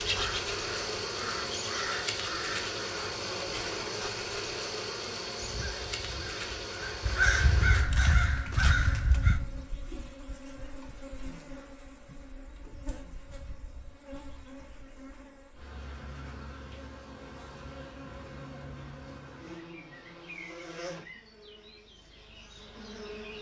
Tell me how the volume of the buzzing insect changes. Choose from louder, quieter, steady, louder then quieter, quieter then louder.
quieter.